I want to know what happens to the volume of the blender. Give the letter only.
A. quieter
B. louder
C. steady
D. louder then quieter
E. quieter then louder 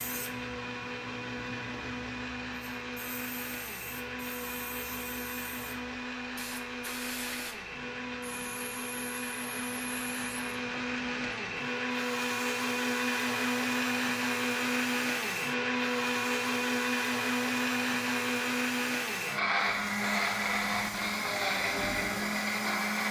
B.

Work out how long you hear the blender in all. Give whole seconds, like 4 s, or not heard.
23 s.